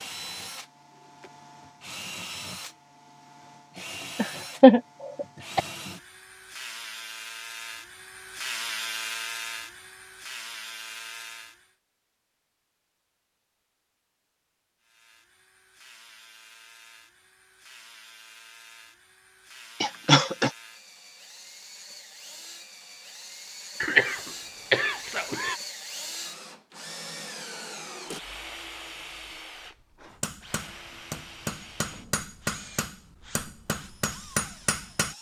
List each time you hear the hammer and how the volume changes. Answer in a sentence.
You can hear the hammer from 30.1 to 35.1 s, getting louder.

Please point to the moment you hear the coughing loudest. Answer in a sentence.
The volume of the coughing peaks at 5 seconds.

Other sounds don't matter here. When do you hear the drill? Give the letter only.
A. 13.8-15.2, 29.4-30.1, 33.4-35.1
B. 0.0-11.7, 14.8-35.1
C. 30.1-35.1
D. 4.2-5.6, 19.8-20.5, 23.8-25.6
B.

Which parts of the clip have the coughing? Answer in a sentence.
The coughing can be heard from 4.2 to 5.6 s, from 19.8 to 20.5 s and from 23.8 to 25.6 s.